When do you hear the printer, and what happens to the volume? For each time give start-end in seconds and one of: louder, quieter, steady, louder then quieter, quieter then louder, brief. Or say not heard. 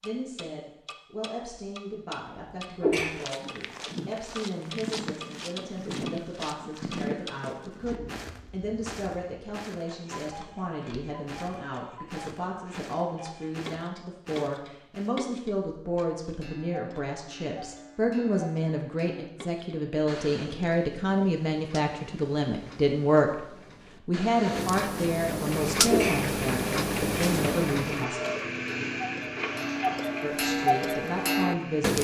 25.5-31.9 louder then quieter.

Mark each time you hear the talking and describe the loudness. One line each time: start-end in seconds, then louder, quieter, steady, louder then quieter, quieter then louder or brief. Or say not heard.
0.0-28.2 louder
30.2-31.9 brief.